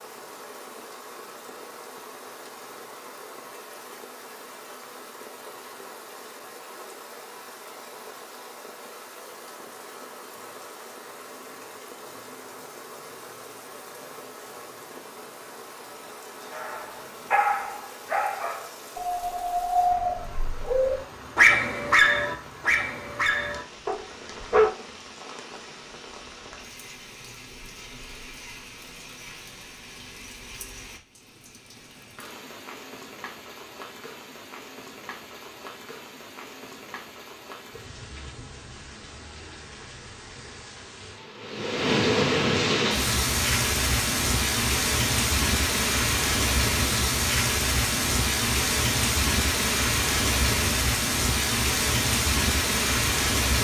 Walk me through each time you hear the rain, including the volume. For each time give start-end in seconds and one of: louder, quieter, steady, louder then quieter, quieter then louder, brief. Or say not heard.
0.0-53.5 louder.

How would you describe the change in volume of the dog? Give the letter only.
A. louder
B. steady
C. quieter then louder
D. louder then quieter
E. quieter
D.